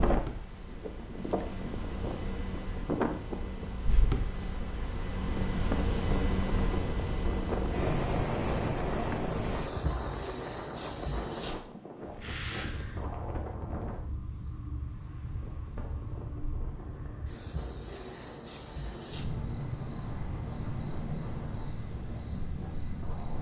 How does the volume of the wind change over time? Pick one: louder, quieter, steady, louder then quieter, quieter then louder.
quieter.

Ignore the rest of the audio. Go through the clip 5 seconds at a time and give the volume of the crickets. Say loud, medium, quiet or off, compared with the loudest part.
medium, loud, medium, medium, medium.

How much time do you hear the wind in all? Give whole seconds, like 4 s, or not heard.
23 s.